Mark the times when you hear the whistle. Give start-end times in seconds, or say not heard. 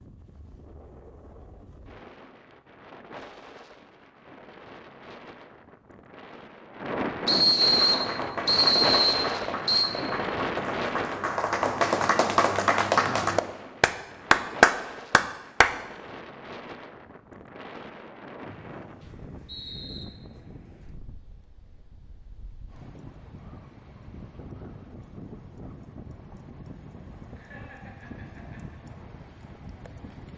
7.2-9.8, 18.4-20.1.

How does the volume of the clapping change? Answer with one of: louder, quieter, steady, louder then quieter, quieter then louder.
louder.